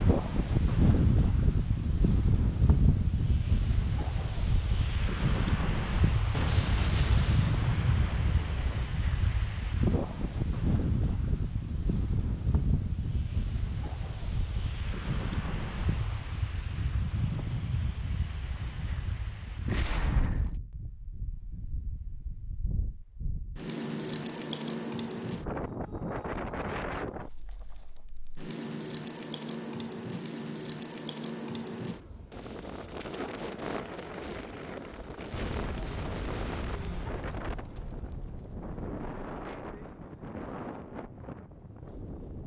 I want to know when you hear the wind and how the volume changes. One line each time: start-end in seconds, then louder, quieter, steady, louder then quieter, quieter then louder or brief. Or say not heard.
0.0-42.4 quieter.